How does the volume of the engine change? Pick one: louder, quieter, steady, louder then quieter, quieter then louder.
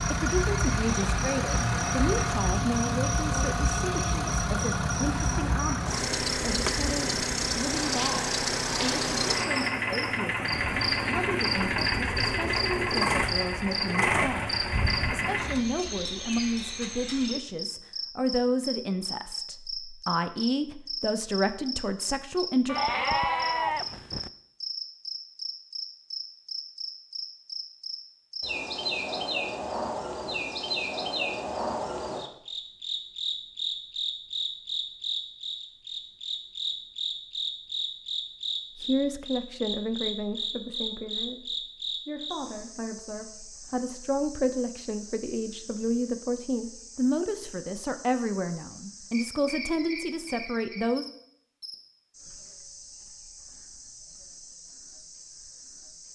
steady.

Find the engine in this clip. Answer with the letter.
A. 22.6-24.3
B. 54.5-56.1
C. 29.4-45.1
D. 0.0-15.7
D.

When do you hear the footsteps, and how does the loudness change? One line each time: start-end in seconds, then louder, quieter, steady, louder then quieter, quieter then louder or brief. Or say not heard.
not heard.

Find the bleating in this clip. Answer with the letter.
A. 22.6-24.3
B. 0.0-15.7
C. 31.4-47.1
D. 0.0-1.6
A.